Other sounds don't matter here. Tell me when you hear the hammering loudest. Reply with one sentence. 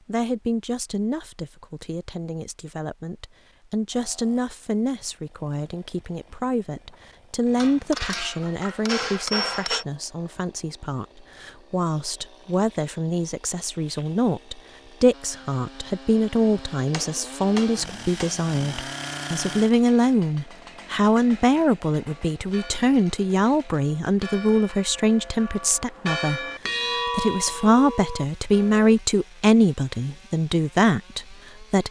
The loudest moment of the hammering is at 9 seconds.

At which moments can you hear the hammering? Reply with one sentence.
The hammering can be heard from 7.6 to 9.8 s and from 16.9 to 18.4 s.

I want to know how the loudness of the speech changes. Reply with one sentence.
The loudness of the speech goes up.